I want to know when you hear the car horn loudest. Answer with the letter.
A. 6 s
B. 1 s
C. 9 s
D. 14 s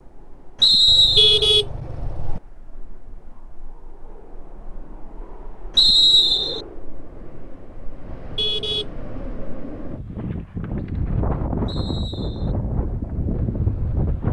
B.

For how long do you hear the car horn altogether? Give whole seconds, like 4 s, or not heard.
3 s.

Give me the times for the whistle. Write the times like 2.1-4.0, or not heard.
0.6-1.4, 5.8-6.6, 11.7-12.6.